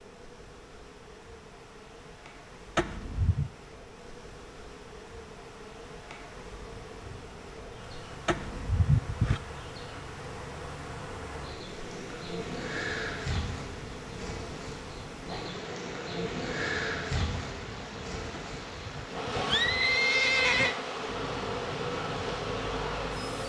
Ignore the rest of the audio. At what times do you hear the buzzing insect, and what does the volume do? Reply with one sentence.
You can hear the buzzing insect from 0.0 to 23.4 s, getting louder.